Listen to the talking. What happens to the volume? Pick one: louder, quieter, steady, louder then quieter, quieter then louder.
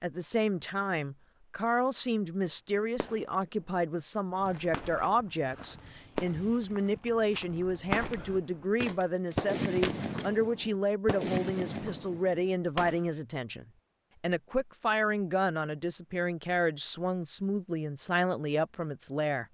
steady.